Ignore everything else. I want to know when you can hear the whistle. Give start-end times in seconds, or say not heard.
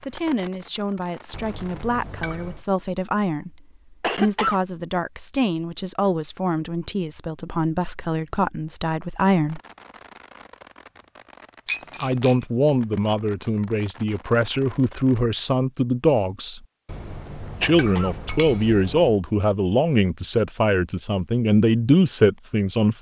not heard.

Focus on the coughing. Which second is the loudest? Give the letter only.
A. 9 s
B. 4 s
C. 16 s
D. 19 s
B.